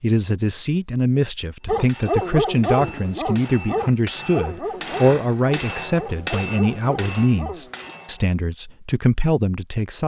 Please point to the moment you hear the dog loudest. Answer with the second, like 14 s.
2 s.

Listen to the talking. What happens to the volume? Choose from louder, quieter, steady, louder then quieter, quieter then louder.
steady.